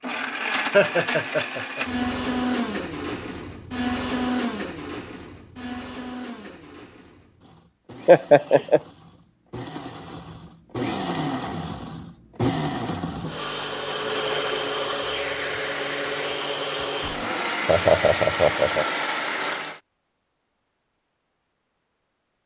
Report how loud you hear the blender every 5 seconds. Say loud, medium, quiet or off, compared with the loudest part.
loud, quiet, loud, loud, off.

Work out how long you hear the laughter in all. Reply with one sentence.
The laughter can be heard for 3 seconds in total.